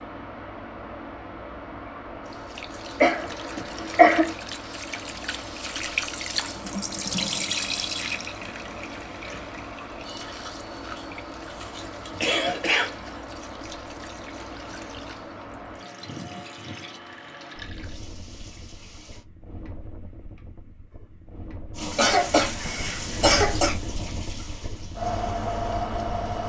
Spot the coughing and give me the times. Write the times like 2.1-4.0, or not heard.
3.0-4.3, 10.9-13.1, 21.9-23.8.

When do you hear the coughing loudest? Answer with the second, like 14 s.
4 s.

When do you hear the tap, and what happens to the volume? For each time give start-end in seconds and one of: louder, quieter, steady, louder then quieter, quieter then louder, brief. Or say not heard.
2.2-19.2 louder then quieter
21.8-26.4 quieter.